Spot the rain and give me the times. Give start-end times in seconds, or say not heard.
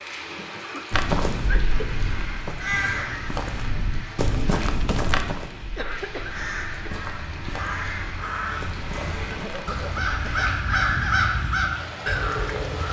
0.0-12.8.